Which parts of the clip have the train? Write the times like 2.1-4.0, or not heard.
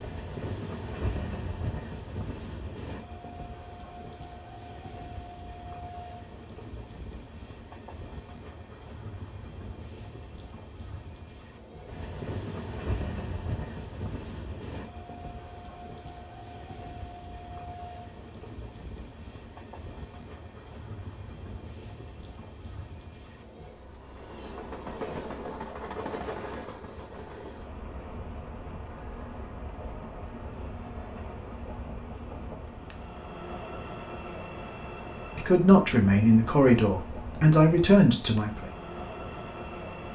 0.0-40.1.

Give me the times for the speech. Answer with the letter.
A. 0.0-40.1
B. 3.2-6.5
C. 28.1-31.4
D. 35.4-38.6
D.